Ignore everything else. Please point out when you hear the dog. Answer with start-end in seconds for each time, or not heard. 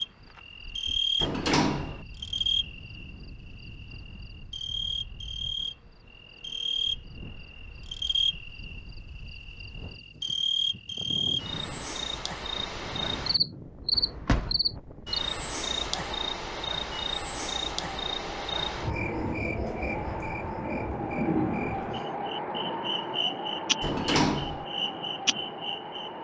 not heard.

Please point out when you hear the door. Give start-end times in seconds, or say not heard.
1.2-2.0, 13.9-14.6, 23.8-24.6.